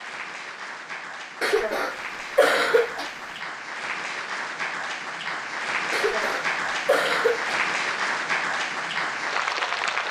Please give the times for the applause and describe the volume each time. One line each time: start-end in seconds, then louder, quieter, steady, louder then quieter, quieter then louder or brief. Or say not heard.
0.0-10.0 louder.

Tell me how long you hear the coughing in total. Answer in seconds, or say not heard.
4 s.